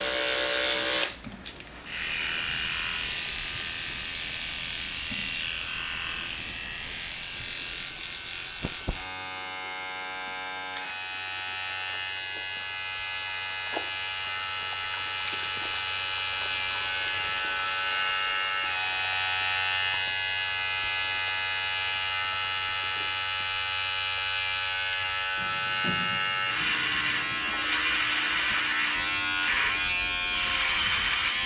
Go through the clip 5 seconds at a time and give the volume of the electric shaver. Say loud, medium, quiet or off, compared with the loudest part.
loud, medium, medium, loud, loud, loud, loud.